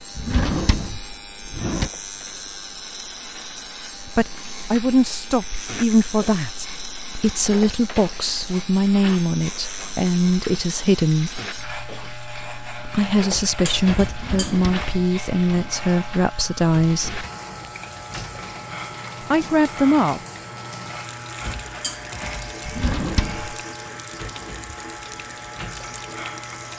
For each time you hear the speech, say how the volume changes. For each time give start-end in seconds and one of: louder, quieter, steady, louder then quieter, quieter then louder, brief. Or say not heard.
4.0-11.4 steady
12.8-17.2 steady
19.2-20.2 brief.